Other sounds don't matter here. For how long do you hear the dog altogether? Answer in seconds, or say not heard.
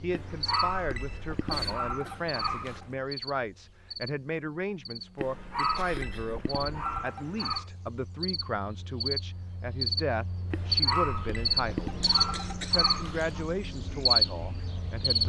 8 s.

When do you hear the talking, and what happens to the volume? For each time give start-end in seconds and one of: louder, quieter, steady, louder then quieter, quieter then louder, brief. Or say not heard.
0.0-11.9 steady
12.7-15.2 brief.